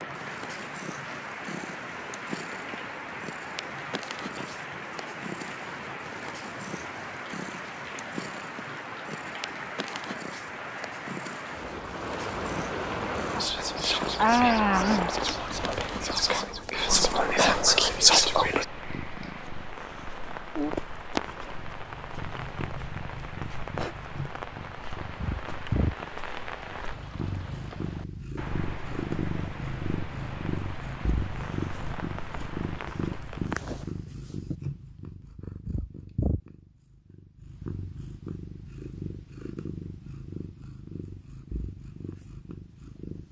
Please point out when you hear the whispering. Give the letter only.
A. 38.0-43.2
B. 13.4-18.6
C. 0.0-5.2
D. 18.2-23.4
B.